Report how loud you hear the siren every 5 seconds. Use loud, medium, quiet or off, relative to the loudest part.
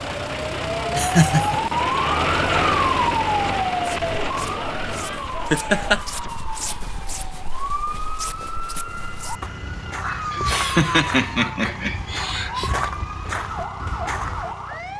loud, medium, medium.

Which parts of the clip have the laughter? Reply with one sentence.
You can hear the laughter from 0.9 to 1.6 s, from 5.5 to 6.0 s and from 10.0 to 12.7 s.